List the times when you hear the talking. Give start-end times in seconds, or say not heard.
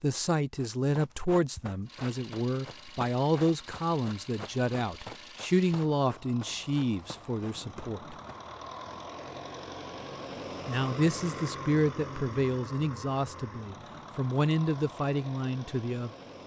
0.0-8.2, 10.7-16.1.